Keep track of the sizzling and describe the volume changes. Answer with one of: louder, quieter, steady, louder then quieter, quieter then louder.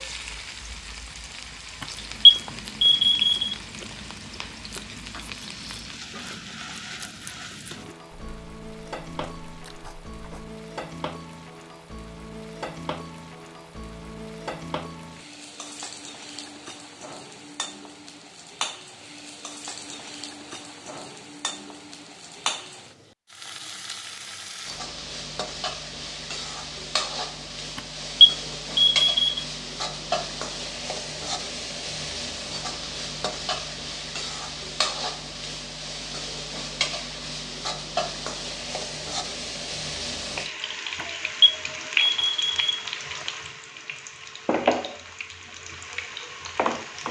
louder.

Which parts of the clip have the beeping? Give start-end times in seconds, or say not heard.
1.8-3.5, 27.8-29.4, 41.4-42.8.